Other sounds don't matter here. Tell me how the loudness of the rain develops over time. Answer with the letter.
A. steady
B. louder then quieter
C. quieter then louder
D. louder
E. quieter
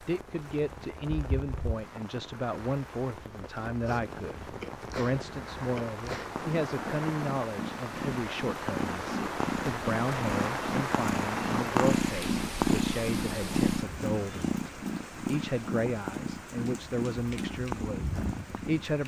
B.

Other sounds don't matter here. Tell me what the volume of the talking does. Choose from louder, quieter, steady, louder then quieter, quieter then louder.
steady.